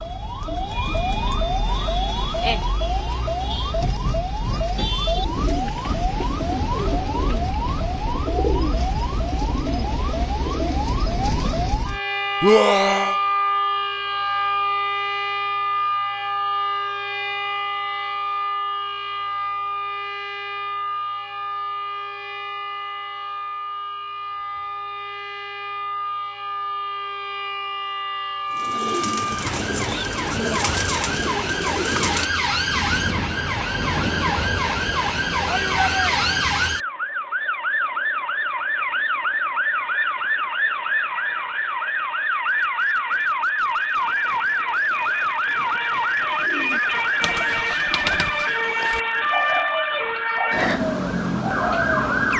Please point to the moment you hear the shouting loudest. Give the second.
13 s.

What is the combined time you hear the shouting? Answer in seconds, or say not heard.
2 s.